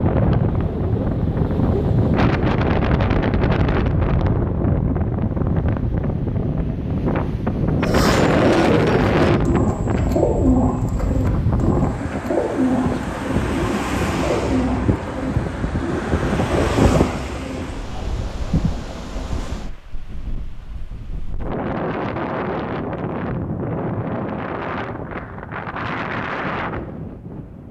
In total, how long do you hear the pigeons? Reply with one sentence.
The pigeons can be heard for 10 seconds in total.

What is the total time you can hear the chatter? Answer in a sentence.
You can't hear the chatter here.